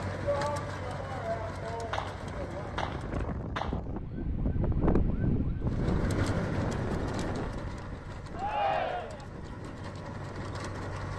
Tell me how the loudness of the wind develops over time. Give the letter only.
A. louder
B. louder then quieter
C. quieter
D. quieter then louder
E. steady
B.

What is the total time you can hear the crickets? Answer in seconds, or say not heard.
not heard.